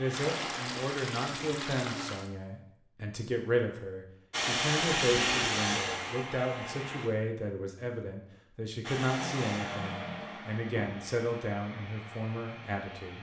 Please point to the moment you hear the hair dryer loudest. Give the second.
5 s.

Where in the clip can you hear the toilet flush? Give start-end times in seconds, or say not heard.
0.1-2.3, 5.0-5.5, 9.2-11.1.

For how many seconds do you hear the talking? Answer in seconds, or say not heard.
13 s.